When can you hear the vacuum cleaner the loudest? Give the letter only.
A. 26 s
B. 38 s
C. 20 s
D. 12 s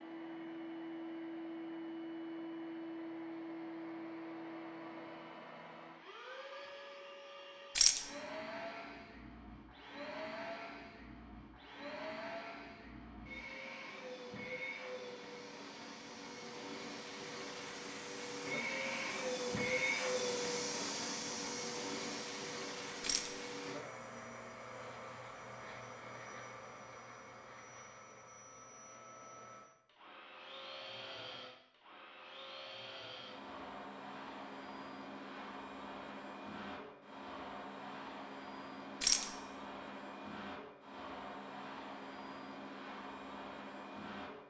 C.